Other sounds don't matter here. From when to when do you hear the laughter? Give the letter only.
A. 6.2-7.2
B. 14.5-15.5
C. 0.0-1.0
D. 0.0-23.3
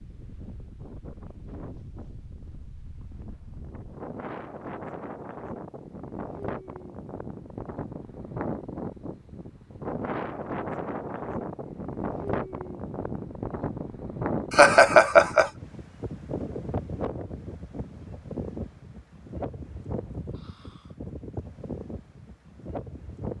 B.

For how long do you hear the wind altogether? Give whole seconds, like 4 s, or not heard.
23 s.